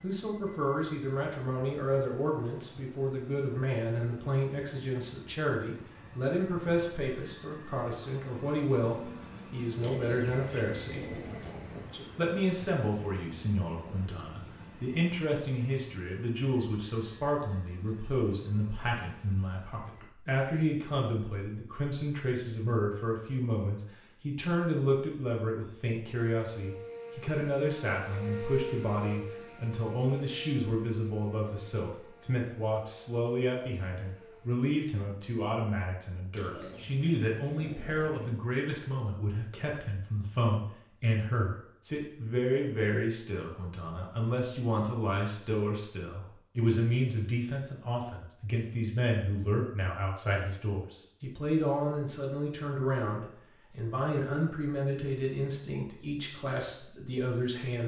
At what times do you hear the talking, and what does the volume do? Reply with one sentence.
You can hear the talking from 0.0 to 11.2 s, at a steady volume; and from 11.8 to 57.8 s, at a steady volume.